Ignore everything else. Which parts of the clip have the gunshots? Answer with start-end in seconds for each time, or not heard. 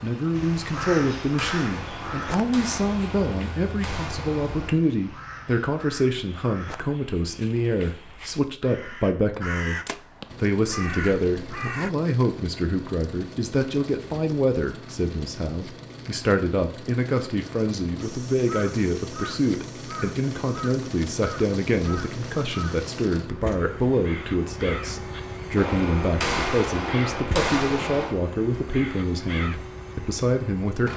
0.7-4.7, 25.6-28.1.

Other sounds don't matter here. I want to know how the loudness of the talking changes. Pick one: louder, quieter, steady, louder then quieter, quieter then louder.
steady.